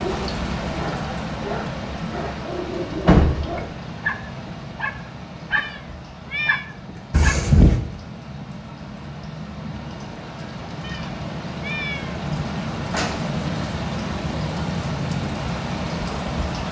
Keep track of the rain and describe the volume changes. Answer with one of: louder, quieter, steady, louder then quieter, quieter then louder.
quieter then louder.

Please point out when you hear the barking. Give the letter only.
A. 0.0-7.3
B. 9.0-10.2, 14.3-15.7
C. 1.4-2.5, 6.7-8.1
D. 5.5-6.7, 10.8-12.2
A.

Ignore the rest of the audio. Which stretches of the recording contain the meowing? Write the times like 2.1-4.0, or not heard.
5.5-6.7, 10.8-12.2.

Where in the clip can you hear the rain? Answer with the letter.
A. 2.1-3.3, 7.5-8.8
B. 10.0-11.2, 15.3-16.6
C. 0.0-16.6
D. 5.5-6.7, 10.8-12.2
C.